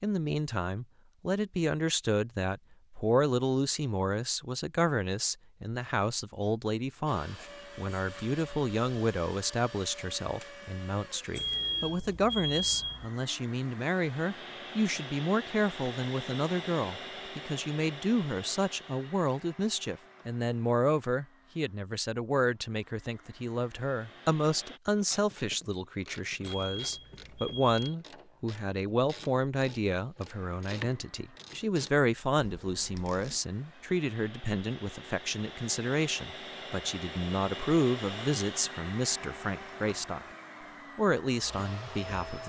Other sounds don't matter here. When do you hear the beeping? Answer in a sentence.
The beeping can be heard from 11.3 to 13.1 s and from 26.4 to 27.8 s.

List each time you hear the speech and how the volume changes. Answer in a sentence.
The speech can be heard from 0.0 to 40.2 s, at a steady volume; and briefly from 41.0 to 42.4 s.